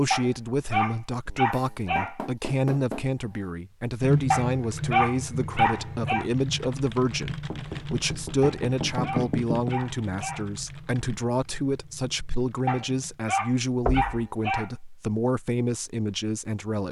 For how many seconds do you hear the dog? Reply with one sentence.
You can hear the dog for 8 seconds altogether.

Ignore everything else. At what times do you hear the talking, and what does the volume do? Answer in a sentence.
You can hear the talking from 0.0 to 16.8 s, at a steady volume.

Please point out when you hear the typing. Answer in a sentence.
The typing can be heard from 4.0 to 13.2 s.